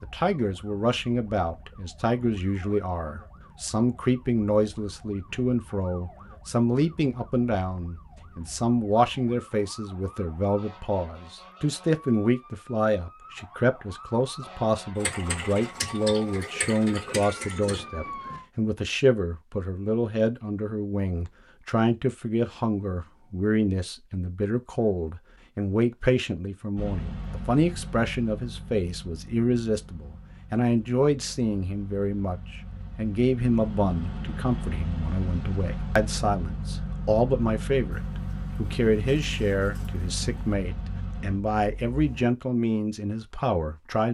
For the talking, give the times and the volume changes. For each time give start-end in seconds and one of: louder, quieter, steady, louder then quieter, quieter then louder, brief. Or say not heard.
0.0-44.0 steady.